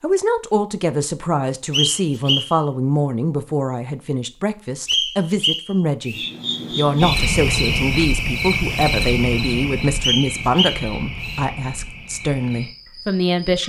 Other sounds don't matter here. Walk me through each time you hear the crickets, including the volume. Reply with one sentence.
The crickets can be heard from 6.2 to 13.6 s, getting quieter.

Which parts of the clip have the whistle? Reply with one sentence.
The whistle can be heard from 1.7 to 2.5 s, from 4.8 to 6.3 s and from 10.0 to 11.4 s.